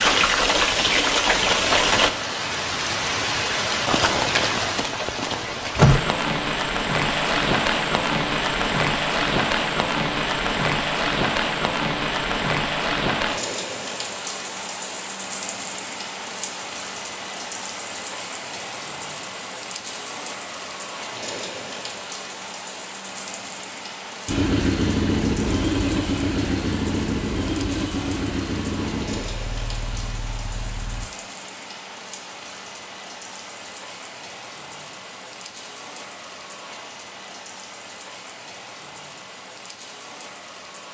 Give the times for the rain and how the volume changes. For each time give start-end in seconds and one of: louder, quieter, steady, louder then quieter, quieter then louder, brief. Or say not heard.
0.0-40.9 quieter.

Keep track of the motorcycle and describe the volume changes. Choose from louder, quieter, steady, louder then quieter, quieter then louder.
quieter.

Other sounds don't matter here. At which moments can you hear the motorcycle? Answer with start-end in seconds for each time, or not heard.
24.2-31.1.